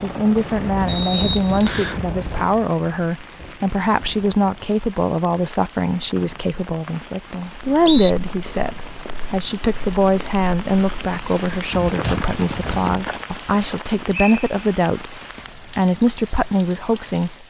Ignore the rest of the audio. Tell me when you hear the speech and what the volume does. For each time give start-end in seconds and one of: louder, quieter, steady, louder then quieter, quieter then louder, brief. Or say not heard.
0.0-17.4 steady.